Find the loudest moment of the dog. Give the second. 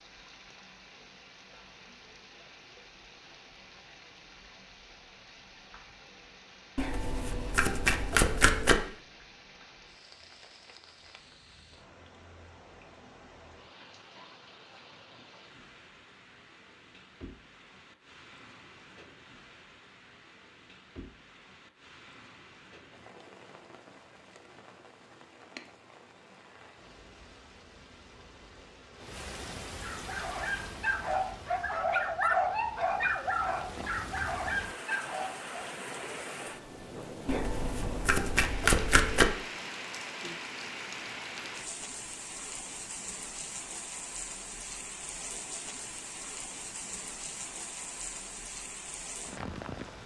32 s.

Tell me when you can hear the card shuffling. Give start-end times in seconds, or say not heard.
6.8-8.8, 37.2-39.3.